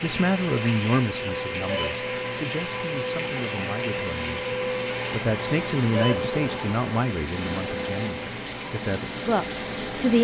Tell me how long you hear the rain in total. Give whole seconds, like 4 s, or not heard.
10 s.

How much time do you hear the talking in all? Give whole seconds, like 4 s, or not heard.
10 s.